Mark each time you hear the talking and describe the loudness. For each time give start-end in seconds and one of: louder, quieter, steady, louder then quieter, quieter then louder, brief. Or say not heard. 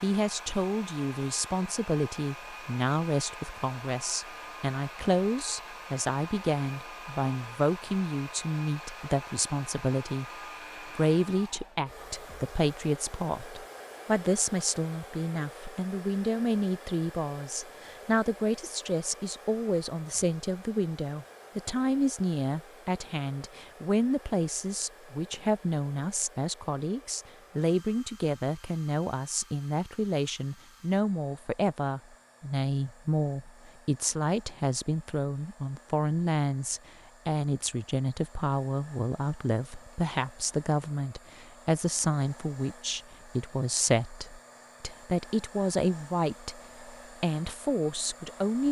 0.0-10.2 steady
10.8-48.6 steady.